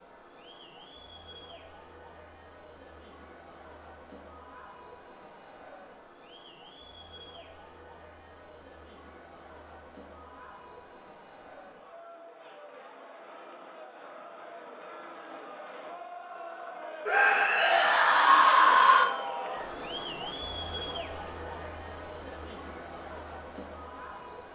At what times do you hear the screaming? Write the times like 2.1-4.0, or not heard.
17.1-19.1.